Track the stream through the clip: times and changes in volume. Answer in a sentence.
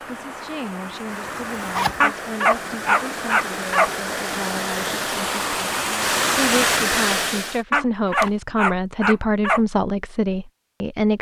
The stream can be heard from 0.0 to 7.6 s, getting louder.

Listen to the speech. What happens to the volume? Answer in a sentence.
The volume of the speech goes up.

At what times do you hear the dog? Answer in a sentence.
You can hear the dog from 2.0 to 3.9 s and from 7.7 to 9.6 s.